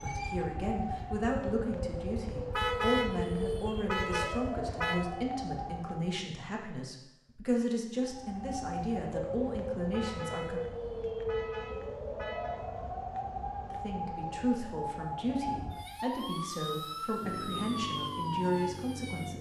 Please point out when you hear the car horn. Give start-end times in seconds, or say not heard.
2.5-5.0, 9.9-12.6.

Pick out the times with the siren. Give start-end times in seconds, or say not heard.
0.0-6.3, 8.0-19.3.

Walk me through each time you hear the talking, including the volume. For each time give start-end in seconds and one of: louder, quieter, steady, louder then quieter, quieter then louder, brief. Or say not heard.
0.0-10.6 steady
13.7-19.3 steady.